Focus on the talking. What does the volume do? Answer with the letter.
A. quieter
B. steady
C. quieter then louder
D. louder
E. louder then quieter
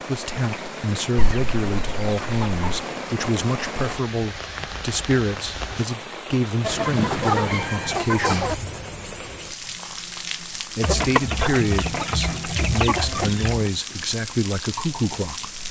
B.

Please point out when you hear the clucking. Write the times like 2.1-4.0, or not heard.
1.1-2.9, 6.6-8.6, 10.8-13.7.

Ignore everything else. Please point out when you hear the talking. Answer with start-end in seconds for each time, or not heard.
0.1-8.5, 10.8-15.6.